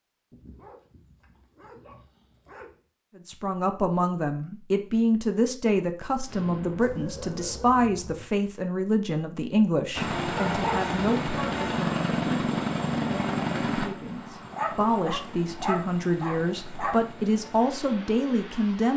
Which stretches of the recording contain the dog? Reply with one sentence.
You can hear the dog from 0.3 to 2.8 s, from 6.8 to 7.8 s, from 10.3 to 10.9 s and from 14.4 to 17.1 s.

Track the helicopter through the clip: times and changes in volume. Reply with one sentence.
You can hear the helicopter from 9.9 to 18.9 s, getting quieter.